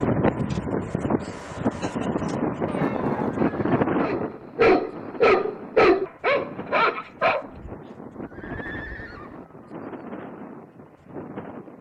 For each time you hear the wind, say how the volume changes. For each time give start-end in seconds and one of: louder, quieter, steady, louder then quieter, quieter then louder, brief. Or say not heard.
0.0-11.7 quieter.